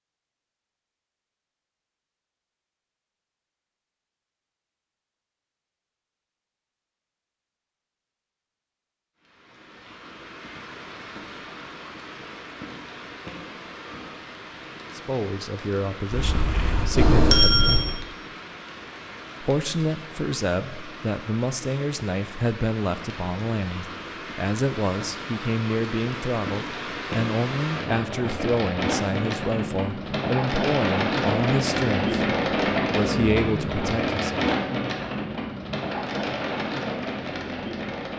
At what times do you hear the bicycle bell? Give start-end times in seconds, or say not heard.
16.1-17.9.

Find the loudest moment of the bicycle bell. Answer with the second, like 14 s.
17 s.